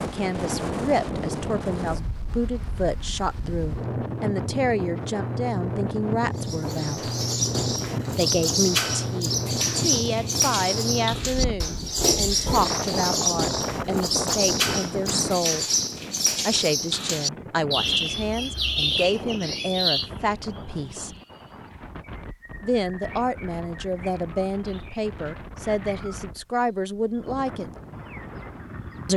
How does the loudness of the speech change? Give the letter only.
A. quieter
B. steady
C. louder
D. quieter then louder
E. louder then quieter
B.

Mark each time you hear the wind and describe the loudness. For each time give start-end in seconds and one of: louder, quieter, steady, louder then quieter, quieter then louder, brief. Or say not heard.
0.0-29.1 quieter.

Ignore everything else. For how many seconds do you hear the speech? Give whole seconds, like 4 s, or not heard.
24 s.